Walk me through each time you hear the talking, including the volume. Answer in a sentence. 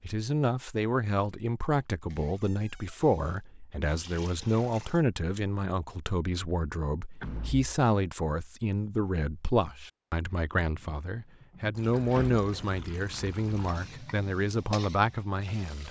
You can hear the talking from 0.0 to 15.8 s, at a steady volume.